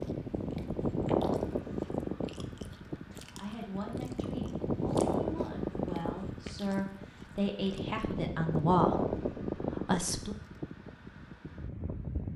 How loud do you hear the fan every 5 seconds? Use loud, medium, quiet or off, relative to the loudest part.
loud, loud, medium.